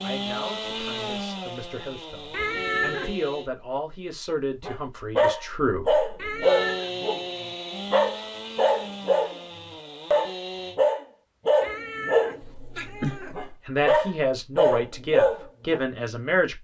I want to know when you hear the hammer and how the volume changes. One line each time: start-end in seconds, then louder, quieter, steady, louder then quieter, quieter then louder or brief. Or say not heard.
not heard.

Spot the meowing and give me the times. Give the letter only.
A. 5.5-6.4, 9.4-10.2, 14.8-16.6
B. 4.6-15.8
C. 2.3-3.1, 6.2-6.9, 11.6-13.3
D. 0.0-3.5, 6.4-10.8
C.